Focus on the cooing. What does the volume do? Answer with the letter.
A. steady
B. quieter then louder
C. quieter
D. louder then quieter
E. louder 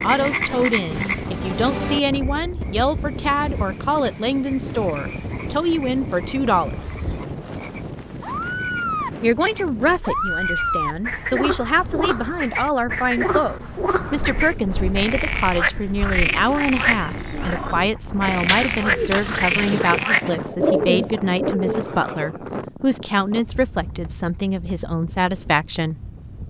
E.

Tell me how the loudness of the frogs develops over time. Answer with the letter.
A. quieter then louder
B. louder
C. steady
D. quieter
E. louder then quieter
A.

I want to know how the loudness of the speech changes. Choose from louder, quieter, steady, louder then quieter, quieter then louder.
steady.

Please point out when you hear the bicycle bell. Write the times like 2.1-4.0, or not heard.
not heard.